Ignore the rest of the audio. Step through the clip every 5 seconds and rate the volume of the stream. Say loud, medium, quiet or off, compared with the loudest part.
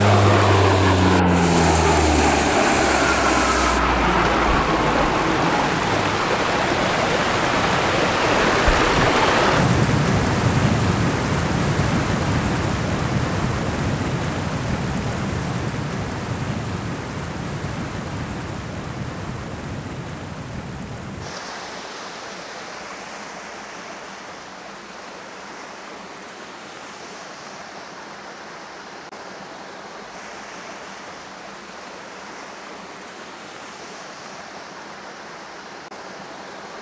medium, loud, loud, medium, quiet, quiet, quiet, quiet.